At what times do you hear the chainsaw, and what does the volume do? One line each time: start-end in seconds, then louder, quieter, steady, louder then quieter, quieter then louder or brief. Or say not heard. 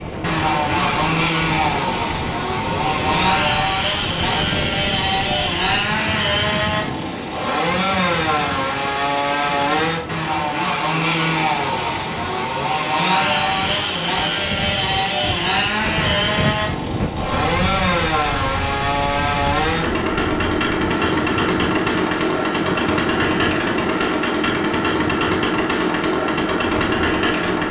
0.0-27.6 steady.